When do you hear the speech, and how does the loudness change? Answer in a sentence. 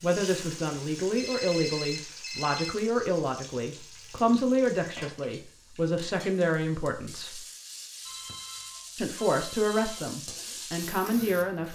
You can hear the speech from 0.0 to 7.5 s, at a steady volume; and briefly from 8.9 to 11.7 s.